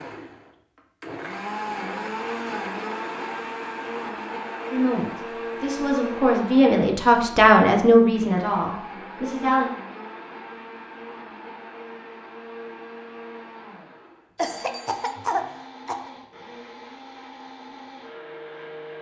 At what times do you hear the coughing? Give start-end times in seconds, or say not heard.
14.3-16.1.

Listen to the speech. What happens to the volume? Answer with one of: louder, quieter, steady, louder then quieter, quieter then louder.
louder then quieter.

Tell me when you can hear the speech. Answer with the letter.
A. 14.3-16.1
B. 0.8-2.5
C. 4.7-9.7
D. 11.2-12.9
C.